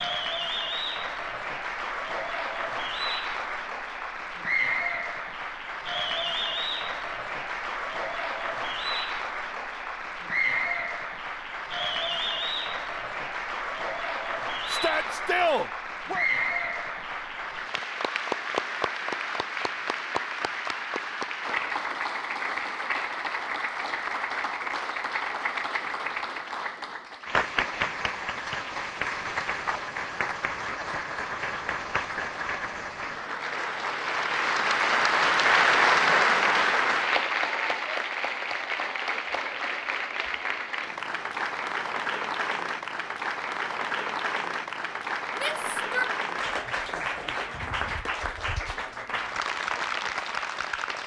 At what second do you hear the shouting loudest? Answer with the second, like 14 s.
15 s.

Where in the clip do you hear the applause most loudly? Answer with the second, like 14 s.
36 s.